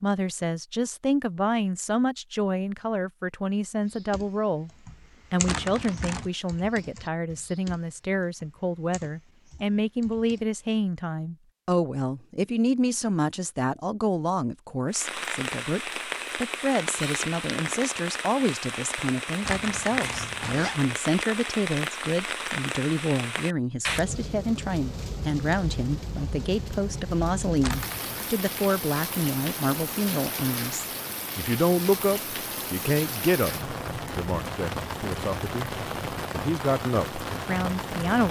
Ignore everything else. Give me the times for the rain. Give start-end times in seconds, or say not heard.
14.9-38.2.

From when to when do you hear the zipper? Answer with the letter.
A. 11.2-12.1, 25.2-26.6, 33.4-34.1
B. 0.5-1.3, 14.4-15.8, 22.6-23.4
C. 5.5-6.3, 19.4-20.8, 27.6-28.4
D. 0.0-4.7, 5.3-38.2
C.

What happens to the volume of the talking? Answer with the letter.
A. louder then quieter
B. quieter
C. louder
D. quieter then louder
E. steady
E.